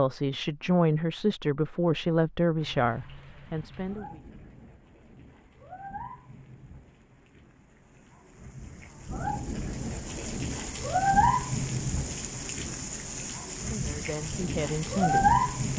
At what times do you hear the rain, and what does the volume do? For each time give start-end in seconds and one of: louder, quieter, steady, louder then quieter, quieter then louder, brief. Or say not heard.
2.5-15.7 louder.